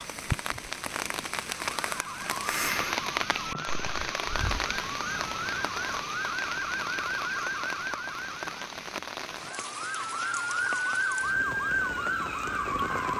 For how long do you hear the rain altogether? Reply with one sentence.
You can hear the rain for 13 seconds altogether.